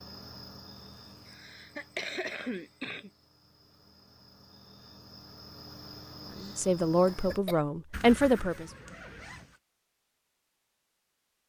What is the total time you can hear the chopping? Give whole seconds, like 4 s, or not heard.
not heard.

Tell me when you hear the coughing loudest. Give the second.
2 s.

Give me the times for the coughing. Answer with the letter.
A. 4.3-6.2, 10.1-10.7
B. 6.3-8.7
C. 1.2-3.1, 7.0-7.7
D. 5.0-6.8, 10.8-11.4
C.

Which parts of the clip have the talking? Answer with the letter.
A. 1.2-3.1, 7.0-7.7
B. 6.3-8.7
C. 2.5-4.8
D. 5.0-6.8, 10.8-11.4
B.